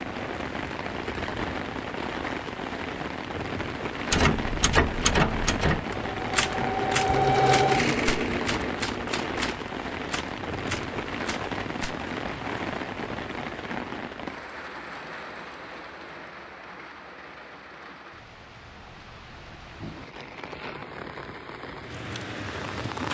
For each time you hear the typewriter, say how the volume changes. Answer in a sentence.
You can hear the typewriter from 4.1 to 11.9 s, getting quieter.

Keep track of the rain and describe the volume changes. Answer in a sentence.
The loudness of the rain goes down.